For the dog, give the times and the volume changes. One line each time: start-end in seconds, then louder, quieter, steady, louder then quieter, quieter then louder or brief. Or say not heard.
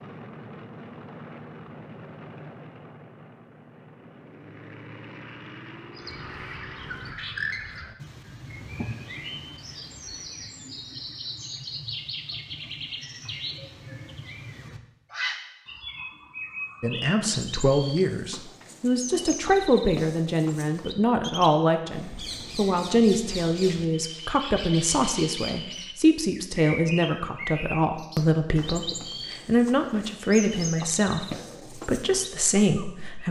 not heard.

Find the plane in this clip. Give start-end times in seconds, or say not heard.
0.0-7.2.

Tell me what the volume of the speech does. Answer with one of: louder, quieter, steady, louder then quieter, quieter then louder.
steady.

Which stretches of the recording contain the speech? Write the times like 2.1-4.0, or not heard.
16.8-33.2.